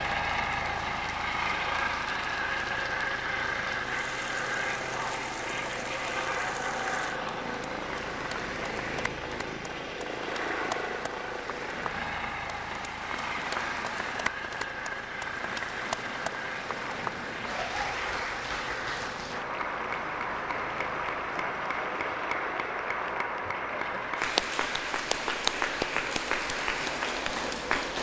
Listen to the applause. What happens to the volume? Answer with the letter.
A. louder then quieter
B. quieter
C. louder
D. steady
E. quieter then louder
C.